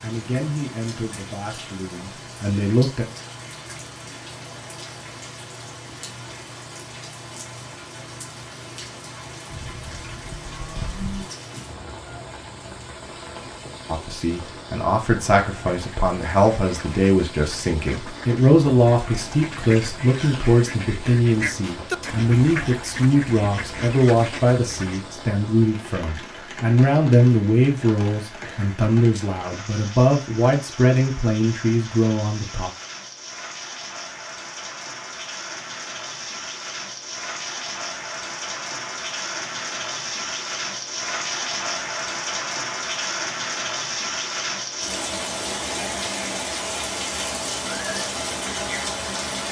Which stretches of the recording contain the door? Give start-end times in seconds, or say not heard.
not heard.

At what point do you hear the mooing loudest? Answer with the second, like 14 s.
11 s.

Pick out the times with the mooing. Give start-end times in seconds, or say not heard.
9.5-11.2.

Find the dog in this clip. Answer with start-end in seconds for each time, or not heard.
not heard.